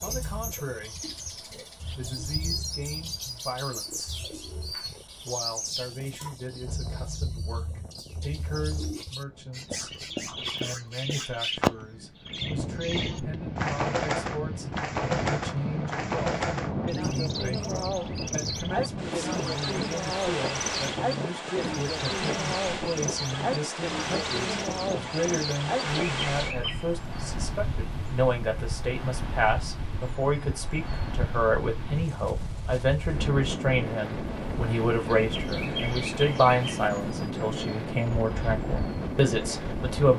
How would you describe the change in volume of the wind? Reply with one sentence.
The volume of the wind goes up.